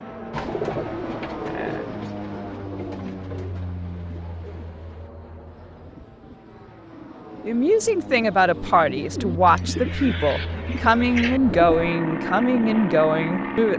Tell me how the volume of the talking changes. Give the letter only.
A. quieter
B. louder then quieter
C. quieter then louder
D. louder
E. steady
E.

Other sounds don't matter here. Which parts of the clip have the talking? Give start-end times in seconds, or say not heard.
7.5-13.7.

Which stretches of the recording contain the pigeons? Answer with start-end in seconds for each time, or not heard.
0.3-11.9.